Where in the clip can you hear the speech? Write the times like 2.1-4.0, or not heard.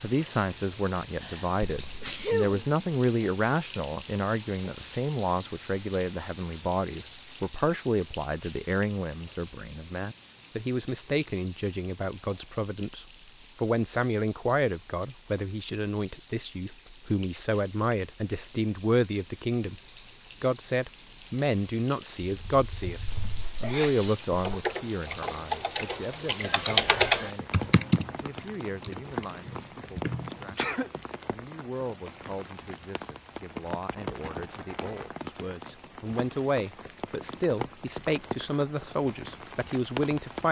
0.0-19.8, 20.4-40.4.